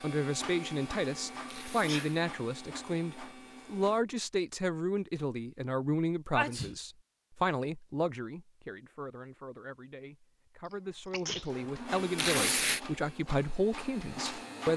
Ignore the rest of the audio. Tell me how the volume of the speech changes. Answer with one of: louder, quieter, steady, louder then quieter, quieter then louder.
quieter then louder.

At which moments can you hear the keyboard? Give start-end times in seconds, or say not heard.
not heard.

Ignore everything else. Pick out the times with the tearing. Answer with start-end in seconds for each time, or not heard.
1.4-2.2, 12.2-12.8.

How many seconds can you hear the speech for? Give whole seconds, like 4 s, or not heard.
15 s.